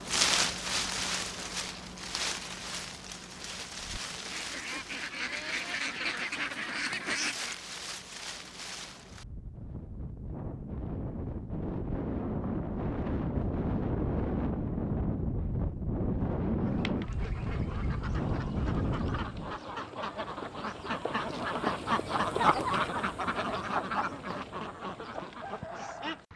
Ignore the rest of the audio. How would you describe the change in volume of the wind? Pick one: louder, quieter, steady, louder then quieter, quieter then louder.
quieter then louder.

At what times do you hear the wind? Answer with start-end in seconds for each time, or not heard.
0.0-19.6.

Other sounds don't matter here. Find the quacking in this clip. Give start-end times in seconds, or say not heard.
3.8-7.5, 16.6-26.3.